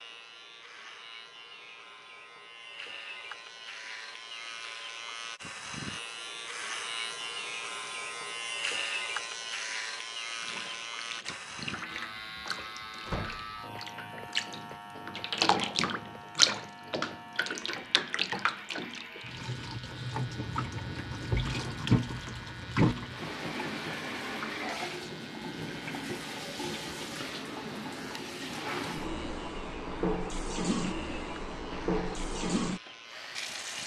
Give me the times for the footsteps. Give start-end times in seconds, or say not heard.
not heard.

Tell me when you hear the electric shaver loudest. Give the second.
9 s.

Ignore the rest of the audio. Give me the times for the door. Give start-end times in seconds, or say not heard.
13.1-13.5.